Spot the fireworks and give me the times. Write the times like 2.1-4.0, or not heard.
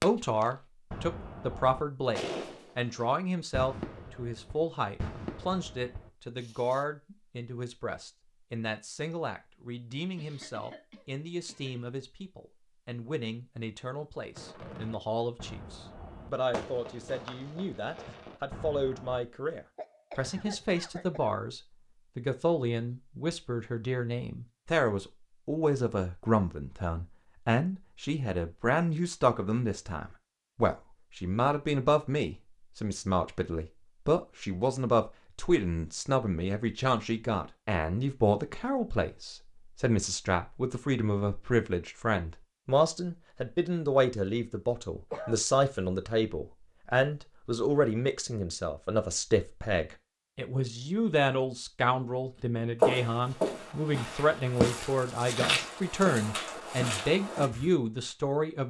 0.0-6.8, 14.3-19.2.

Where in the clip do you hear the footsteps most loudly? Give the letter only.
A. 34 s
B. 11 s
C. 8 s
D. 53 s
D.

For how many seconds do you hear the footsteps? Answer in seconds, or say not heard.
5 s.